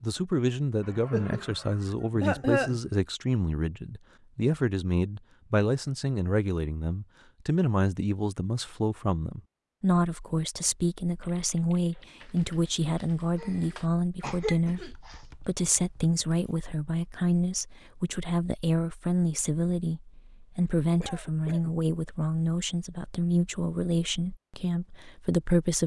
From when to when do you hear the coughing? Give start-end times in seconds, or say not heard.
0.8-2.8, 13.3-15.2, 21.0-21.8.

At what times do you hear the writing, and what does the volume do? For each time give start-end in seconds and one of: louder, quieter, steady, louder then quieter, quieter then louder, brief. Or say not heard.
not heard.